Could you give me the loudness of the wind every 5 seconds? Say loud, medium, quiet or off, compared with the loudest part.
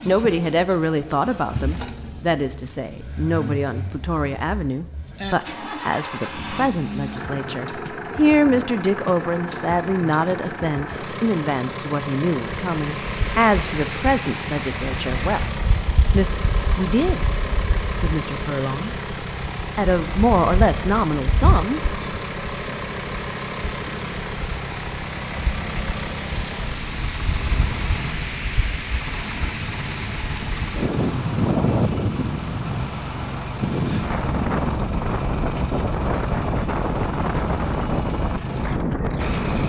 off, off, medium, medium, medium, medium, loud, loud.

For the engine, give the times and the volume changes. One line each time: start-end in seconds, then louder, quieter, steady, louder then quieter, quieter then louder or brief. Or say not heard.
0.0-39.6 steady.